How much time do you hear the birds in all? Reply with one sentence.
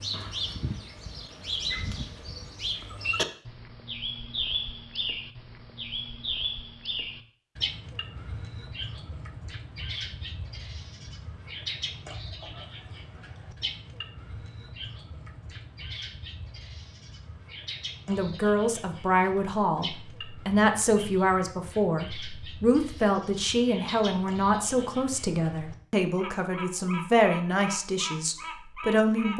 You can hear the birds for 29 seconds altogether.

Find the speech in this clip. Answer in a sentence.
The speech can be heard from 18.1 to 29.3 s.